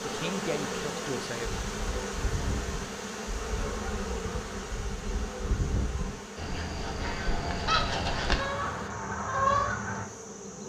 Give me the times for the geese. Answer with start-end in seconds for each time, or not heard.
1.4-10.1.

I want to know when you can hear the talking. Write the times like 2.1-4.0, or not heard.
0.0-1.6.